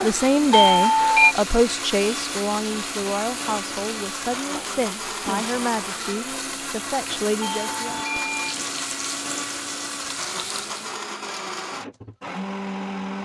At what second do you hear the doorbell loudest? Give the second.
1 s.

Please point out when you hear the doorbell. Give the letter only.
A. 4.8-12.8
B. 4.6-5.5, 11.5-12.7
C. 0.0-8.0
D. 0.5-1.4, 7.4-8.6
D.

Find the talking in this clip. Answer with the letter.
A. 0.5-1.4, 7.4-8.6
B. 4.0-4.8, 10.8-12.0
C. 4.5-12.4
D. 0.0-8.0
D.